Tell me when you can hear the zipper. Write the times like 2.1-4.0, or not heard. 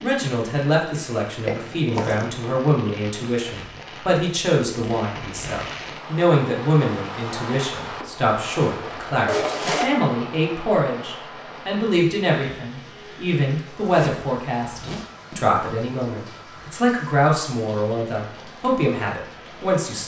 1.4-2.5, 9.2-9.9, 13.8-15.1.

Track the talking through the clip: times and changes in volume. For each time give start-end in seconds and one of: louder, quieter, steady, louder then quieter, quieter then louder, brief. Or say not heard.
0.0-20.0 steady.